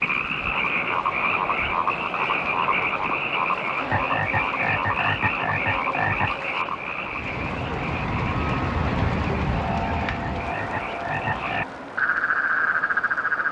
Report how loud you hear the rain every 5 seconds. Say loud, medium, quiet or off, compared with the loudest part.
quiet, loud, medium.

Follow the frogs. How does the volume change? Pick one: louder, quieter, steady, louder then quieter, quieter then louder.
quieter then louder.